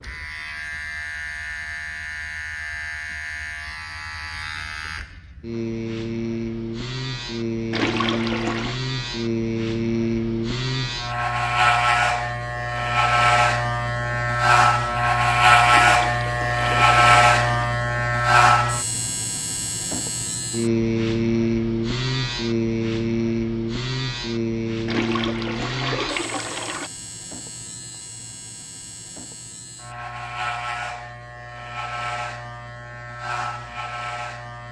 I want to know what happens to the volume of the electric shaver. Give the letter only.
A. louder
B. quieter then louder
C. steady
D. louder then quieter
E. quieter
D.